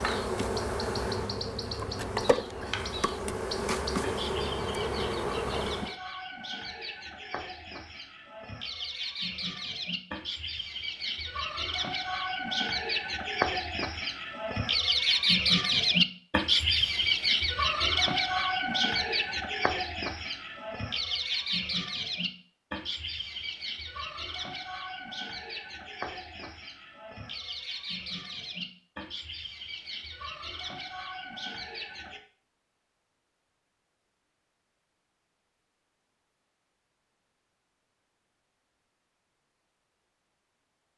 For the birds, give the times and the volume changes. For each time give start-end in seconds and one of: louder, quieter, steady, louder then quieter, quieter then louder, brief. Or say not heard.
0.0-32.2 louder then quieter.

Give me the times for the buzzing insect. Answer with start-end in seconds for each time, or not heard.
0.0-6.0.